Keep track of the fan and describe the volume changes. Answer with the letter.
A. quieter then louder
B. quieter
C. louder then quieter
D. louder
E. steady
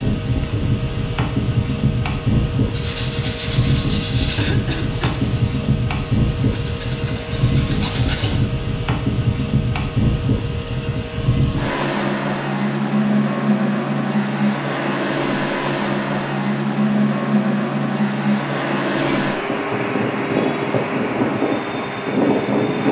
E.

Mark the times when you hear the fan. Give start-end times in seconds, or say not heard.
0.0-22.8.